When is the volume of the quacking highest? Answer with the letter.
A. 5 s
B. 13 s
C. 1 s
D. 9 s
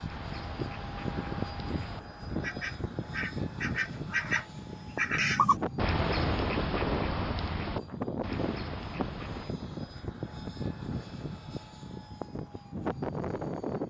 A.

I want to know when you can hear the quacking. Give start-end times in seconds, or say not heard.
0.1-9.6.